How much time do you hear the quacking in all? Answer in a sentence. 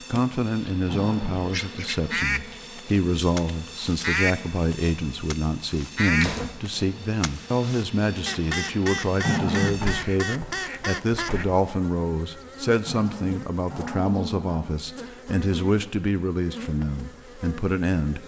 You can hear the quacking for 10 seconds altogether.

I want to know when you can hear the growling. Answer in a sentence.
You can hear the growling from 0.8 to 1.4 s, from 9.2 to 9.9 s and from 12.8 to 14.6 s.